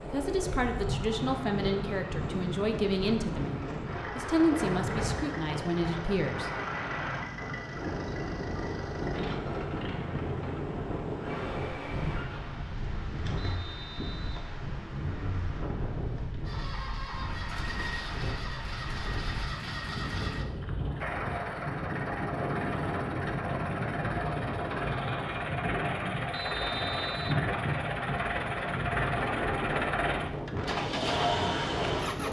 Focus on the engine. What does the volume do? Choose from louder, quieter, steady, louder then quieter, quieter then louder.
louder.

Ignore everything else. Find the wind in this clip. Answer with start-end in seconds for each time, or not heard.
0.0-32.2.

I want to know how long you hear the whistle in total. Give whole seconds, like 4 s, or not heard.
2 s.